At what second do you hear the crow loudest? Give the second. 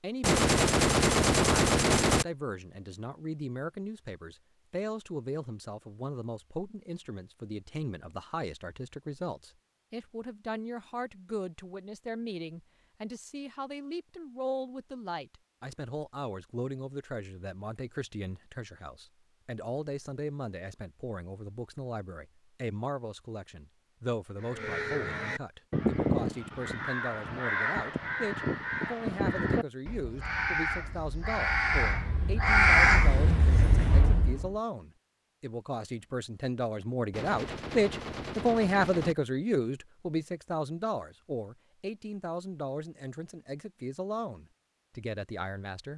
33 s.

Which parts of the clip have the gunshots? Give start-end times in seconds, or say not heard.
0.2-2.2, 37.1-39.1.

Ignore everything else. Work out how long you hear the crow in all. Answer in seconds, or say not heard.
10 s.